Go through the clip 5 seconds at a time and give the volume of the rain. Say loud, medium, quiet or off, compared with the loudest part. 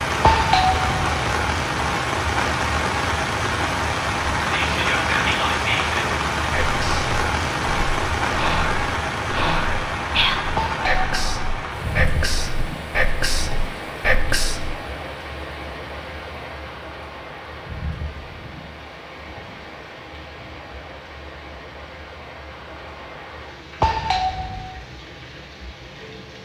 loud, loud, medium, quiet, quiet, quiet.